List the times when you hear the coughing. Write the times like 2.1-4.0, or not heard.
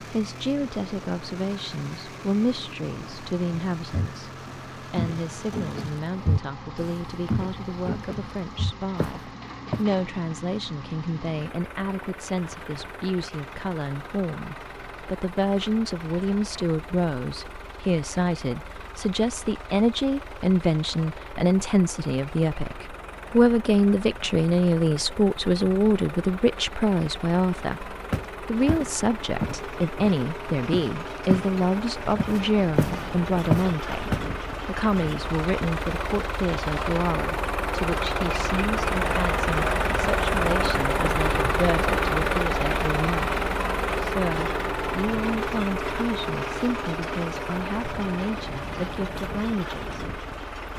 not heard.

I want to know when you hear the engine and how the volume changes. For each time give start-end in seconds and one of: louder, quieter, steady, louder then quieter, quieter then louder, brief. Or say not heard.
0.0-50.7 louder.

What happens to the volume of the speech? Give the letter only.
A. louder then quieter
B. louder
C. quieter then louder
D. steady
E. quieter
A.